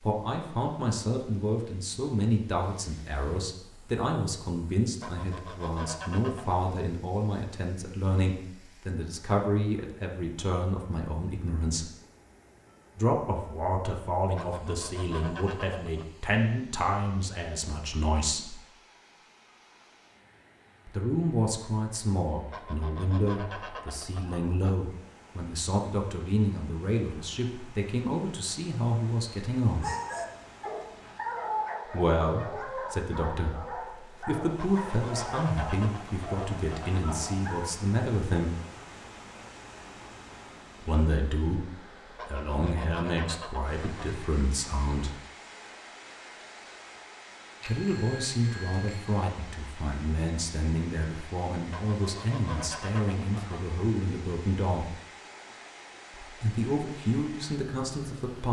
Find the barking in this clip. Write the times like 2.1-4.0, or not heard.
29.8-37.7.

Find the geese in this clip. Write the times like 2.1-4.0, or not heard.
5.0-6.7, 14.3-16.1, 22.5-24.8, 34.5-37.1, 42.1-44.2, 51.7-53.8.